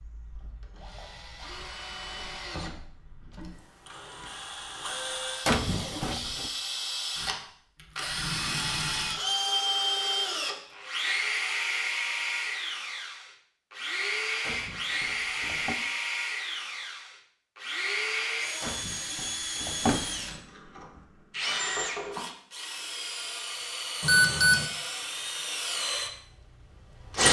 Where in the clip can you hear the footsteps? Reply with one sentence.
The footsteps can't be heard in this clip.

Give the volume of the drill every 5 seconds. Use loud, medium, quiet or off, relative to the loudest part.
quiet, loud, loud, loud, medium, loud.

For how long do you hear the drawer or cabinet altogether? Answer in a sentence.
The drawer or cabinet can be heard for 4 seconds in total.